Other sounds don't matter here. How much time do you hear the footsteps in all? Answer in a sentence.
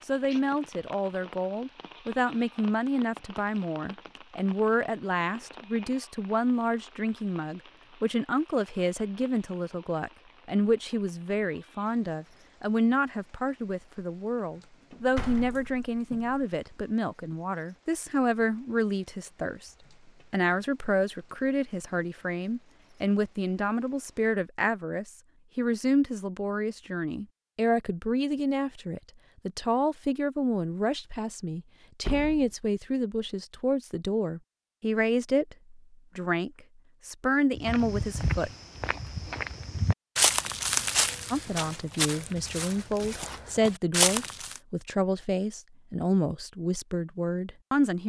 You can hear the footsteps for 7 seconds altogether.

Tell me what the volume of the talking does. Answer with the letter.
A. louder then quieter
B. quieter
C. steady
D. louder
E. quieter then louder
C.